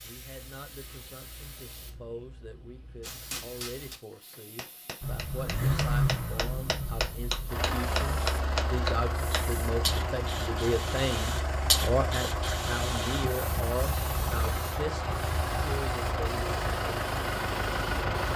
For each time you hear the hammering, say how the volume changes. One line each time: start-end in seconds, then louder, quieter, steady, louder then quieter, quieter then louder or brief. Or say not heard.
3.0-9.4 louder.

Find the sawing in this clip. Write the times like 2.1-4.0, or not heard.
not heard.